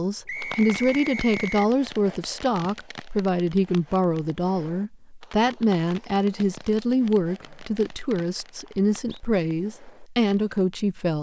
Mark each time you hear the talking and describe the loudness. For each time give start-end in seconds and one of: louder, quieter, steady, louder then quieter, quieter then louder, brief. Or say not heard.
0.0-11.1 steady.